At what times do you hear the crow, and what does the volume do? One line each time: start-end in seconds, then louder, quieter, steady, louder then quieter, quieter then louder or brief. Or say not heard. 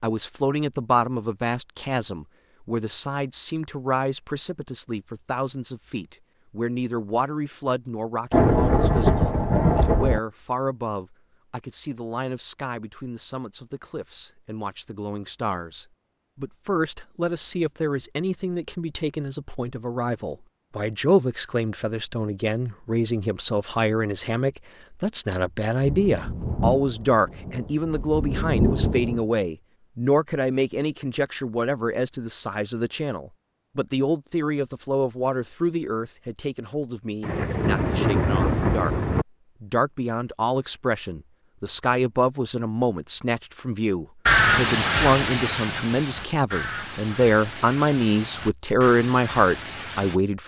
44.2-50.2 quieter.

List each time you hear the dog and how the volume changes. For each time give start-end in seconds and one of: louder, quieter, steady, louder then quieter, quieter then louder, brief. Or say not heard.
not heard.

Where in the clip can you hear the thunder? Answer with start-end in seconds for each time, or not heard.
8.3-10.2, 25.8-29.2, 37.2-39.2.